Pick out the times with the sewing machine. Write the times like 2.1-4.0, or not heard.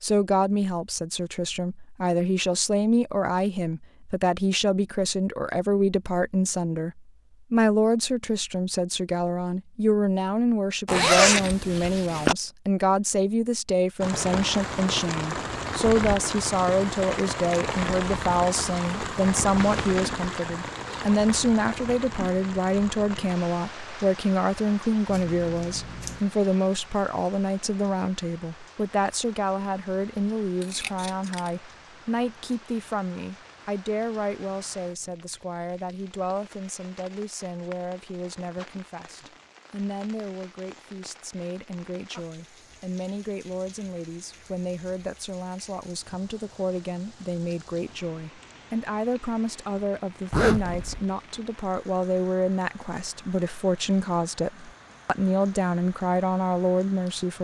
not heard.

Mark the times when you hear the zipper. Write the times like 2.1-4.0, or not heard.
10.8-12.3, 19.6-20.0, 50.3-51.0.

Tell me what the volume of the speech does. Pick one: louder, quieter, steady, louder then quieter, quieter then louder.
quieter then louder.